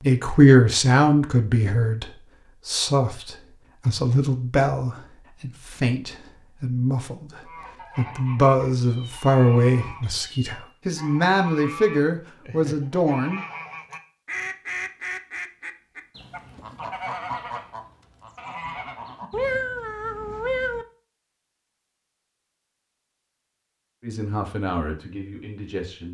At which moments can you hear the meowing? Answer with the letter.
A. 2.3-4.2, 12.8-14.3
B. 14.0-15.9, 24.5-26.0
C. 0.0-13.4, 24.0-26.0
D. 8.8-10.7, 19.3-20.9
D.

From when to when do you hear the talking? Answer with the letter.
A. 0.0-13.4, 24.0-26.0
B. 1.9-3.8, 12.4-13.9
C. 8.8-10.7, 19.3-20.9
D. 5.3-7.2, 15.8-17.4
A.